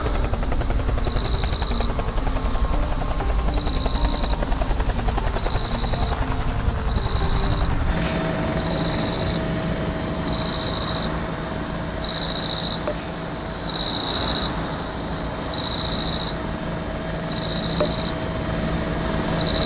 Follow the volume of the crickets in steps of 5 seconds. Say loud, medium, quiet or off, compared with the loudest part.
medium, medium, loud, loud.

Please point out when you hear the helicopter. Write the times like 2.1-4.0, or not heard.
0.0-19.6.